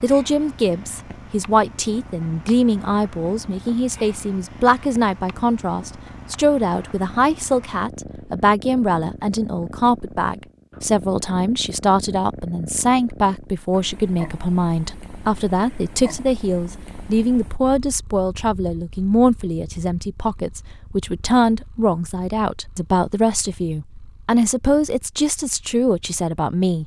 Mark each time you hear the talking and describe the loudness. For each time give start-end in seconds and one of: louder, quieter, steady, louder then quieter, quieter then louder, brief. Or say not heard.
0.0-26.8 steady.